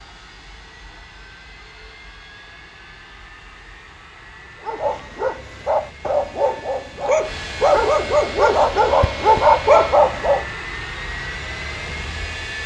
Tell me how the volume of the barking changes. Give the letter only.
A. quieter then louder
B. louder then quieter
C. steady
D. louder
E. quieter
D.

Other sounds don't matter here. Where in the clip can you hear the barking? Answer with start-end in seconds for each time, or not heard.
4.6-10.4.